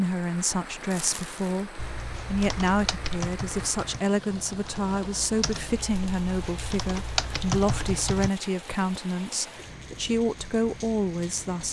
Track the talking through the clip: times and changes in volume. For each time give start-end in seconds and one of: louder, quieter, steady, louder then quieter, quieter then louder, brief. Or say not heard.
0.0-11.6 steady.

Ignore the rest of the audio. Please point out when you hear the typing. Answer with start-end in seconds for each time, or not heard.
1.8-8.3.